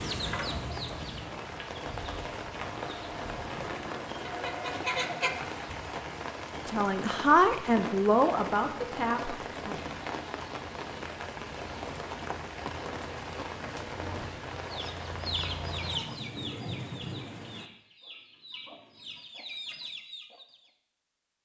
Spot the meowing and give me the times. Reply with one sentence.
The meowing can't be heard in this clip.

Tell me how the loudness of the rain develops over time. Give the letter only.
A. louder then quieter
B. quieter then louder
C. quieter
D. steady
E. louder
D.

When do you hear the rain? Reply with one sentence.
You can hear the rain from 0.1 to 17.7 s.